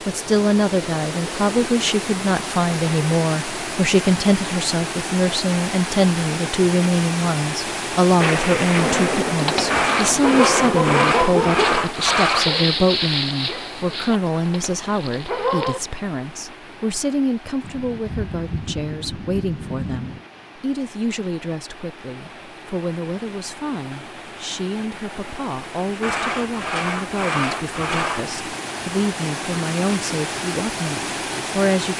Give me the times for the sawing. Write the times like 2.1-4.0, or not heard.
9.7-12.5, 26.0-28.4.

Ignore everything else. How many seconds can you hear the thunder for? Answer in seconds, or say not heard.
6 s.